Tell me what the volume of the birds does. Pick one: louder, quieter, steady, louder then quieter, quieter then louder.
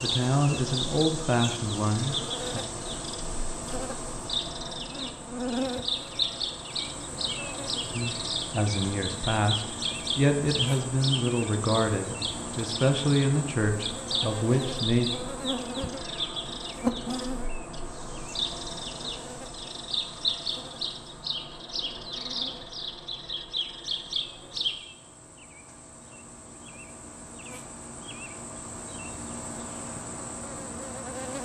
steady.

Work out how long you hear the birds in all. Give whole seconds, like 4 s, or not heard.
25 s.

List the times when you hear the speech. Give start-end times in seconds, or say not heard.
0.0-2.6, 7.9-15.1.